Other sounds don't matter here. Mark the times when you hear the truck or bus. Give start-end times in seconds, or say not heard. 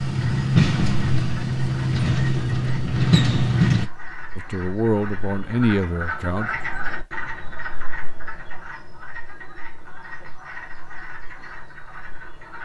0.0-3.9.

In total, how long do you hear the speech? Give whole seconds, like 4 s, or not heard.
2 s.